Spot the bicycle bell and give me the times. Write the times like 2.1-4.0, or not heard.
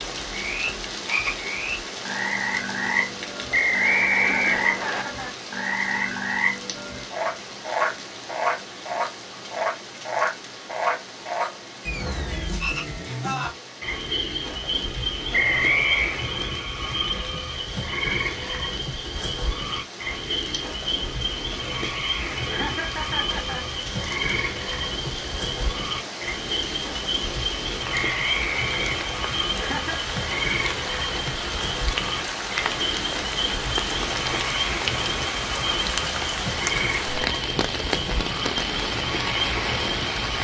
not heard.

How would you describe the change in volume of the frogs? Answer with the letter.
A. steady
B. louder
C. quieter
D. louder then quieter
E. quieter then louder
A.